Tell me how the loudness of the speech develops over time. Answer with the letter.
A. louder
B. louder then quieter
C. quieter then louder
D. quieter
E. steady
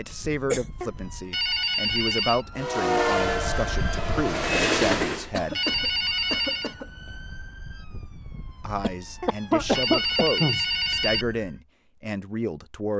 E.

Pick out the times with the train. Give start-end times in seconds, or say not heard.
2.5-5.3.